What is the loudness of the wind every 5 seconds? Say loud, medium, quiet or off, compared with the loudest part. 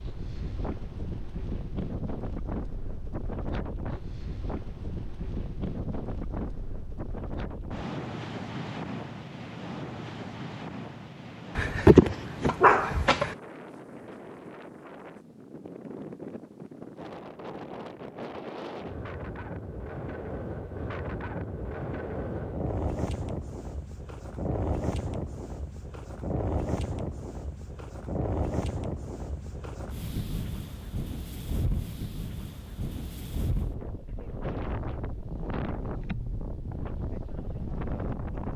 loud, loud, medium, medium, loud, loud, loud, loud.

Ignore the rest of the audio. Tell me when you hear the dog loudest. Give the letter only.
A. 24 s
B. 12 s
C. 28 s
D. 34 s
B.